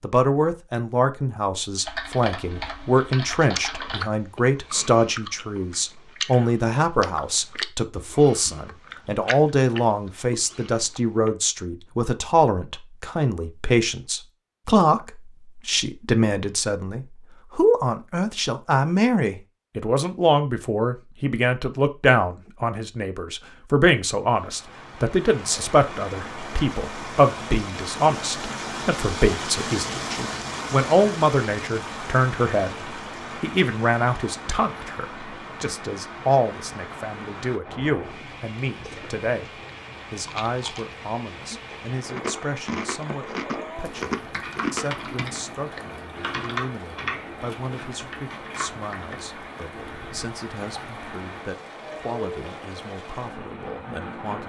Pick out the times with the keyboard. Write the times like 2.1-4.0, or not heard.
1.8-4.0, 44.1-50.3.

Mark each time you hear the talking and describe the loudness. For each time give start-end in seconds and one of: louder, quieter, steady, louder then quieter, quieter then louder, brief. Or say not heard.
0.0-54.4 quieter.